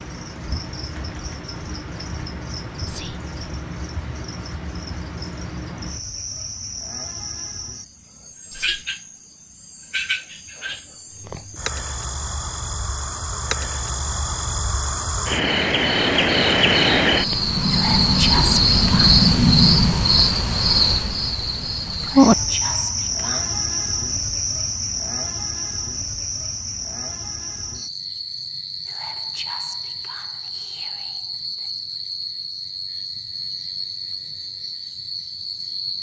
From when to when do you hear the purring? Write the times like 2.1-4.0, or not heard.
not heard.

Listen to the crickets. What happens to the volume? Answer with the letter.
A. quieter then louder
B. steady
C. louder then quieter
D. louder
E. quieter
C.